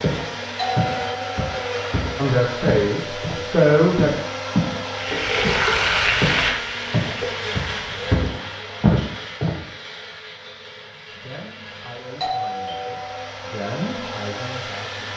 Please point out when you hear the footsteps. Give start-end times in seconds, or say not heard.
0.0-4.8, 5.4-9.6.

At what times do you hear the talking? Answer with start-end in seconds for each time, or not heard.
2.1-4.2, 11.1-15.1.